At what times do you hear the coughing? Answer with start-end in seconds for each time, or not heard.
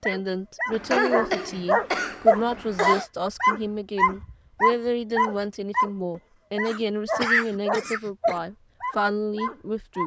0.7-3.0, 6.7-8.3.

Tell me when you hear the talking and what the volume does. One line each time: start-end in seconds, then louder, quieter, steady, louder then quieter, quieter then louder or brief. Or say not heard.
0.0-10.0 steady.